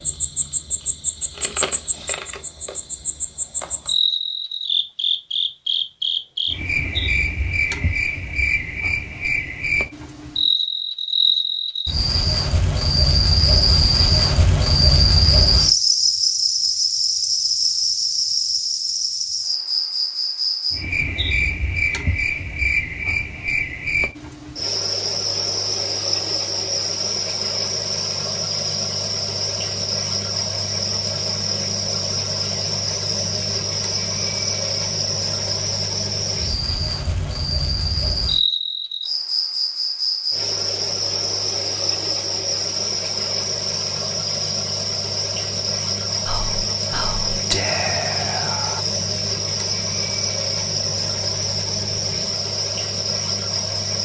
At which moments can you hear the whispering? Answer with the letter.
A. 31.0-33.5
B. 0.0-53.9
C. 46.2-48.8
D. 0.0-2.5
C.